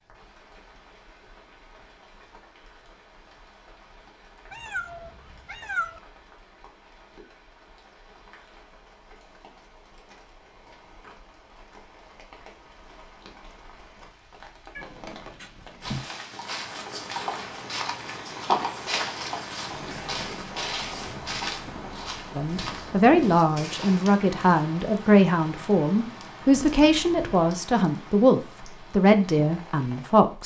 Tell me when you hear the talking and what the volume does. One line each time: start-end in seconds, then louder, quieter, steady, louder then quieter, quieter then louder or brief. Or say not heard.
22.4-30.4 steady.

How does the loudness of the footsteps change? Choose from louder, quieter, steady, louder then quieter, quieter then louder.
louder then quieter.